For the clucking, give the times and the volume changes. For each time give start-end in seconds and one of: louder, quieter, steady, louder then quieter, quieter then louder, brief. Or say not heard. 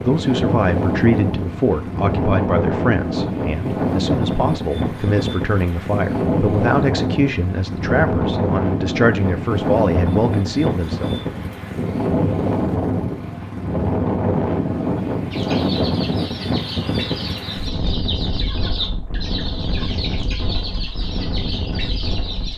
15.3-22.5 steady.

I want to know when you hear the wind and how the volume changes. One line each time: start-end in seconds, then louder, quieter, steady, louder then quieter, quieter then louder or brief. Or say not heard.
0.0-22.5 quieter.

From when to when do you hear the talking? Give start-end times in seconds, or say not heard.
0.0-11.2.